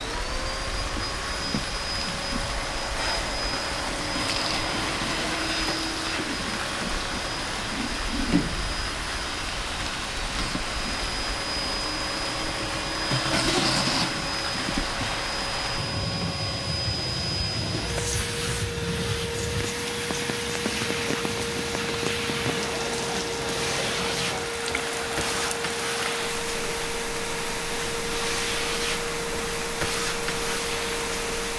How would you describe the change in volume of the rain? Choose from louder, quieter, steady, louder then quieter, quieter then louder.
steady.